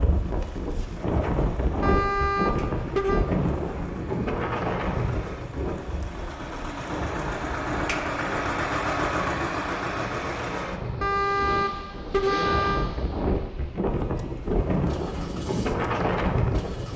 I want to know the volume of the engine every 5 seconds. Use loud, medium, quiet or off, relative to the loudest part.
quiet, loud, medium, quiet.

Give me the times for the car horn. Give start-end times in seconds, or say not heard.
1.8-3.2, 11.0-12.9.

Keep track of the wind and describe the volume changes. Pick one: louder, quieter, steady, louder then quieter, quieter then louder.
quieter then louder.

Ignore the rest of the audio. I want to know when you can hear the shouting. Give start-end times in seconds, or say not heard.
not heard.